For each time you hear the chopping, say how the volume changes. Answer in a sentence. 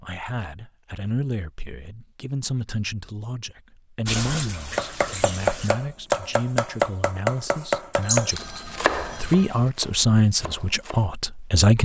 You can hear the chopping from 4.8 to 11.1 s, getting quieter.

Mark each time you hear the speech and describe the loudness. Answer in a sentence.
You can hear the speech from 0.0 to 11.8 s, getting louder.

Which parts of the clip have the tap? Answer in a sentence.
You can hear the tap from 4.0 to 5.7 s.